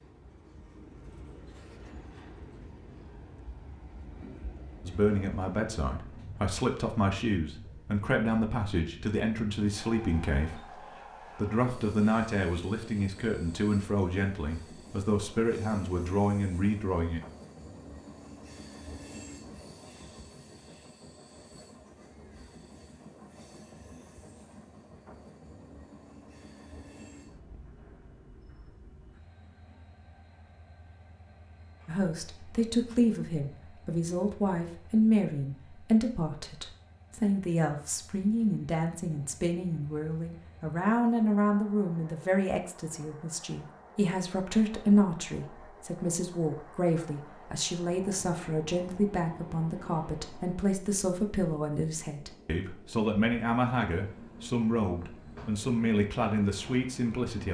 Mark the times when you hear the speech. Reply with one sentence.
The speech can be heard from 4.8 to 10.8 s, from 11.3 to 17.2 s and from 31.9 to 57.4 s.